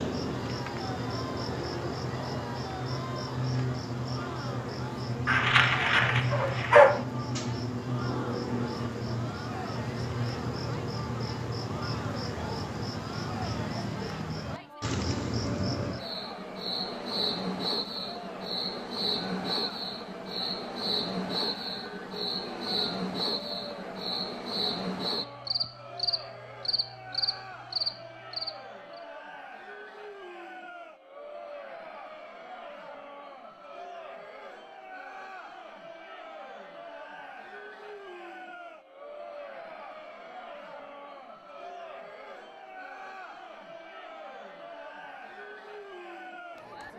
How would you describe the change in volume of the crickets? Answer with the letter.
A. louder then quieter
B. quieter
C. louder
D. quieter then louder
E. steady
E.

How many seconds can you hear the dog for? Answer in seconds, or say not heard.
2 s.